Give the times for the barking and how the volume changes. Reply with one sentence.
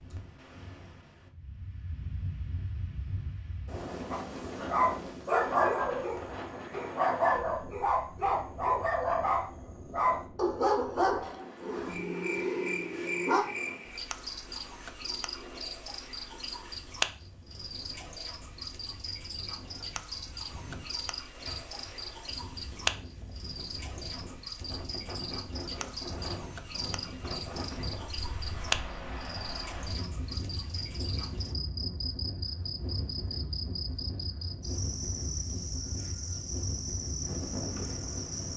You can hear the barking from 4.1 to 13.4 s, getting quieter.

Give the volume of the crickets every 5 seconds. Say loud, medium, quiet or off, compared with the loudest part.
off, off, loud, loud, loud, loud, loud, loud.